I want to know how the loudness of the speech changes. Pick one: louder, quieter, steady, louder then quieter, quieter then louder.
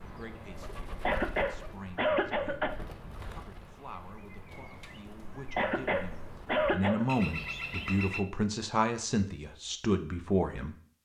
louder.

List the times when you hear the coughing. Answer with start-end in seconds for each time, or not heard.
1.1-2.8, 5.5-7.0.